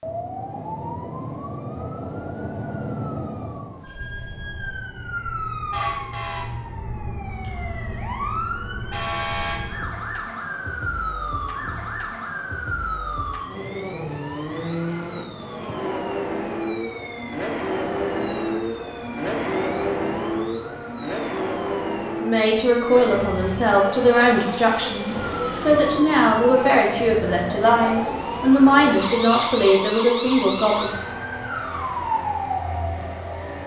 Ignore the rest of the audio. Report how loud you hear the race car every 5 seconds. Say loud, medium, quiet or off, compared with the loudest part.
off, off, loud, loud, loud, medium, medium.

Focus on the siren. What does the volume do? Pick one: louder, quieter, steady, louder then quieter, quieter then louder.
quieter then louder.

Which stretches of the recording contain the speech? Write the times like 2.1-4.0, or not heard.
22.2-30.9.